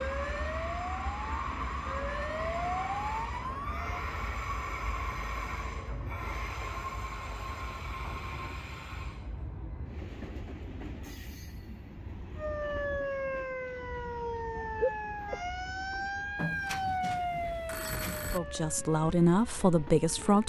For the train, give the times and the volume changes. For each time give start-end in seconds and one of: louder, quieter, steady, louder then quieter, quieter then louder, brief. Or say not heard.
0.0-20.4 quieter.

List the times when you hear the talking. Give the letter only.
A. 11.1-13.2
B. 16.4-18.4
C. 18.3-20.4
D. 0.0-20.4
C.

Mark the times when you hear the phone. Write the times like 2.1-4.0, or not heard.
16.4-18.4.